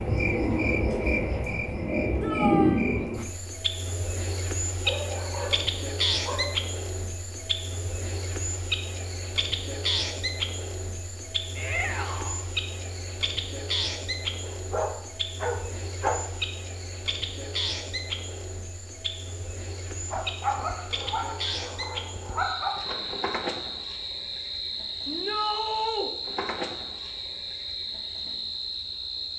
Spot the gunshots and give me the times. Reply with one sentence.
You can't hear the gunshots here.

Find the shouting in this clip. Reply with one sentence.
The shouting can be heard from 2.2 to 2.9 s, from 11.6 to 12.4 s and from 25.1 to 26.1 s.